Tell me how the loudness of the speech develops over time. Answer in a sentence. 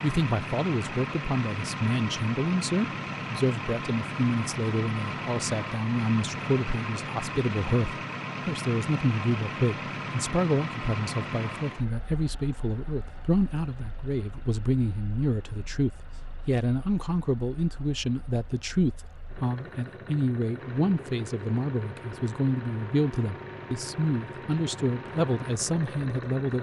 The loudness of the speech stays about the same.